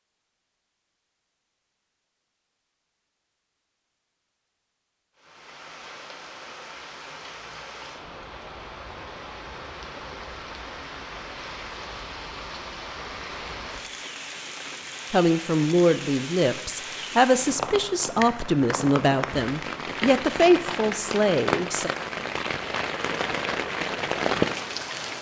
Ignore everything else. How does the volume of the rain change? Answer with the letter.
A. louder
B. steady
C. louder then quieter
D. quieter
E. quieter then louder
A.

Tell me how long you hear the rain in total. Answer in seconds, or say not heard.
20 s.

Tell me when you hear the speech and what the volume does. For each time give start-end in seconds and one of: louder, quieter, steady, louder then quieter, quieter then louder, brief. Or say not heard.
15.1-21.9 steady.